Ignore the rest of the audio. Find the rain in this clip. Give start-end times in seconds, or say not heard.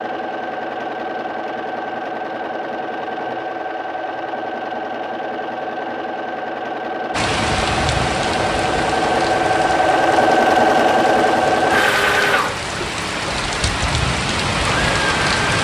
7.1-15.6.